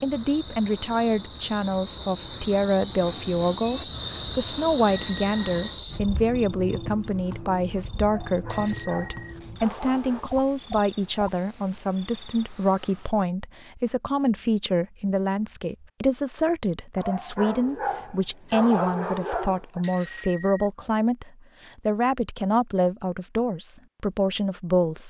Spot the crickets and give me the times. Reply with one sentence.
You can hear the crickets from 0.0 to 13.2 s.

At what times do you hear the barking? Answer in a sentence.
You can hear the barking from 8.1 to 10.2 s and from 16.9 to 19.9 s.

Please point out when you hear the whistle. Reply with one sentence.
You can't hear the whistle here.